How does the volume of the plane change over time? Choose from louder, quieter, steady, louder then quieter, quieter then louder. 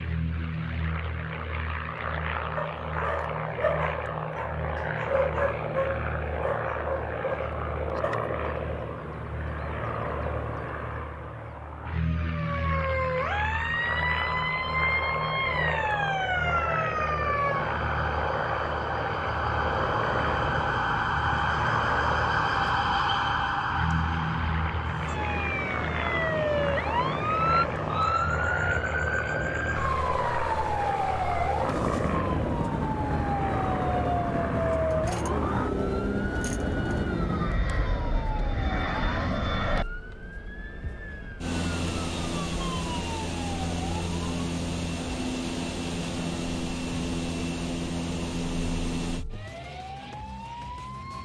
steady.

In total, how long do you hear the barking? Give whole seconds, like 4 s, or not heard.
6 s.